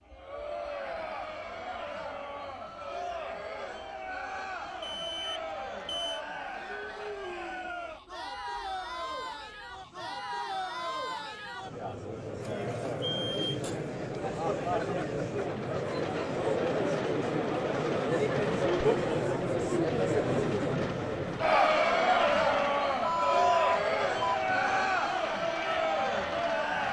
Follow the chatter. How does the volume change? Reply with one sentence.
The volume of the chatter goes up.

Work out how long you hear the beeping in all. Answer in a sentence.
You can hear the beeping for 4 seconds altogether.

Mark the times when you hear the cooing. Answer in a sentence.
You can't hear the cooing here.